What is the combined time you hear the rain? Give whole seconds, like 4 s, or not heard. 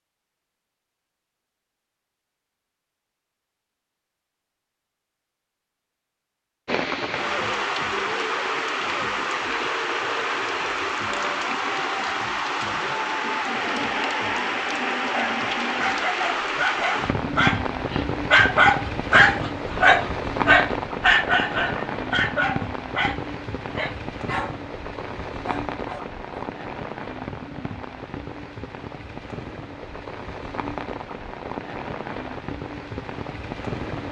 27 s.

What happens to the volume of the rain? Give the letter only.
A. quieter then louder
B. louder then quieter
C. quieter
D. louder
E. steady
C.